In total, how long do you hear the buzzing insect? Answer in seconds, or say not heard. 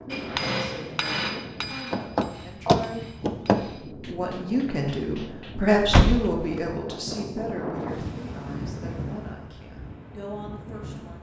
not heard.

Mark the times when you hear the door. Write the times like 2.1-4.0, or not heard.
1.9-3.6, 5.8-6.7.